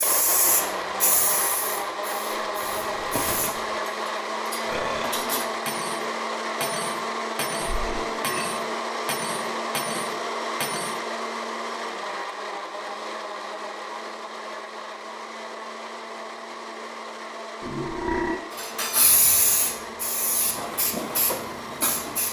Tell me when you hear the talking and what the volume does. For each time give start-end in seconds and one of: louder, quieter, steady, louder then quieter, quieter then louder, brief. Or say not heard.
not heard.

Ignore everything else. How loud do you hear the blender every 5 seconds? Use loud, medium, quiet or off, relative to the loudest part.
loud, loud, loud, medium, medium.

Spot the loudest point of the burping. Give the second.
18 s.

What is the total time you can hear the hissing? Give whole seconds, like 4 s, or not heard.
7 s.